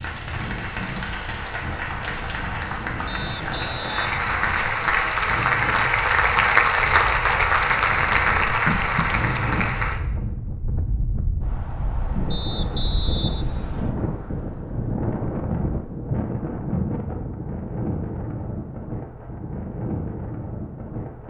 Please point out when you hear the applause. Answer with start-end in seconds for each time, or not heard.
0.0-10.0.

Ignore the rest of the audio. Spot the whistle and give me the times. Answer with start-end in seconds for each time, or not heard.
3.0-5.0, 12.3-13.9.